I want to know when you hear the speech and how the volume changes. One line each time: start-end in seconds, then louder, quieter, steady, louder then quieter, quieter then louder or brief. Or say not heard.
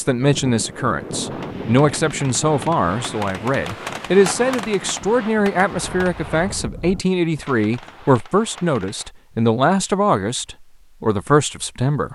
0.0-12.1 steady.